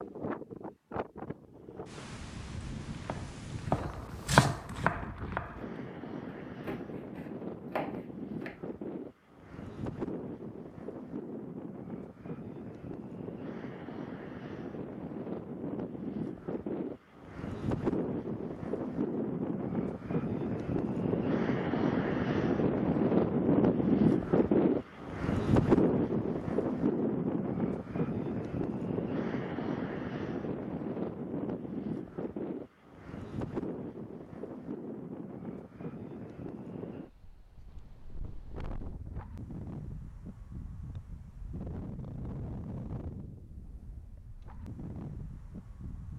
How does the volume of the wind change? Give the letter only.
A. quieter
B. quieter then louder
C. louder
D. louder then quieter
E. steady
D.